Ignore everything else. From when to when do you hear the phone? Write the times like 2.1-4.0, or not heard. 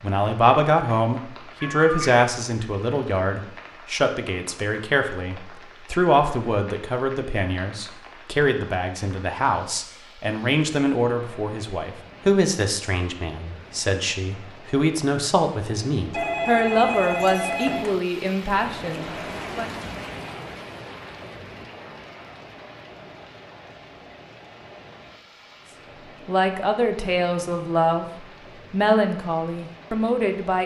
1.6-2.2, 16.1-18.1.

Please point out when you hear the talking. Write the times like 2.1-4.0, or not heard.
0.0-19.7, 26.2-30.6.